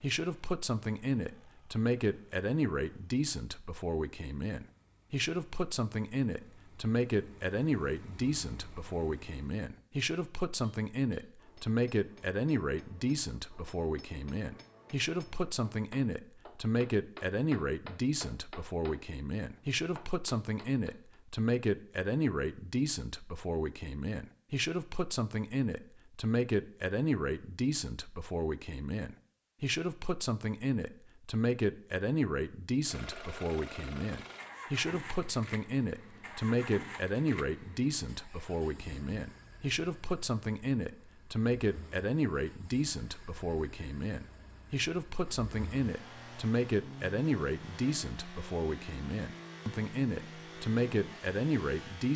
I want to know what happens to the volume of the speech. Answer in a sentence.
The volume of the speech stays about the same.